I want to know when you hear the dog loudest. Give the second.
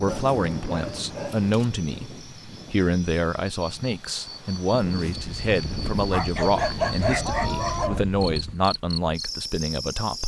7 s.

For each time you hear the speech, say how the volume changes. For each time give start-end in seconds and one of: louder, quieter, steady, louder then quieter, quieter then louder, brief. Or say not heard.
0.0-10.2 steady.